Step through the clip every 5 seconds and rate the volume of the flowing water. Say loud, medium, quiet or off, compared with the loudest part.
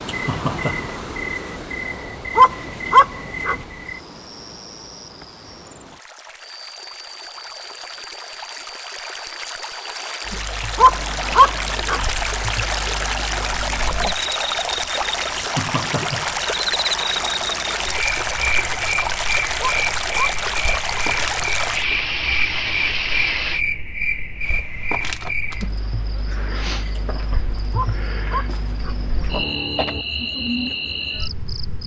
medium, quiet, loud, loud, loud, off, off.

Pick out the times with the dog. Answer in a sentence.
You can hear the dog from 2.4 to 3.5 s, from 10.8 to 12.0 s, from 19.6 to 20.8 s and from 27.7 to 28.9 s.